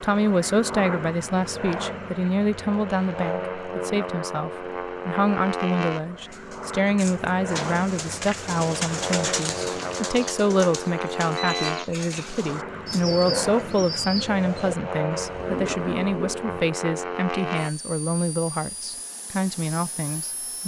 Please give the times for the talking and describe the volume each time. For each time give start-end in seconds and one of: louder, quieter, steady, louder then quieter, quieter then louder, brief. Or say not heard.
0.0-20.6 steady.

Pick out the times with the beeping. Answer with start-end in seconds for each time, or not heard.
11.3-11.8.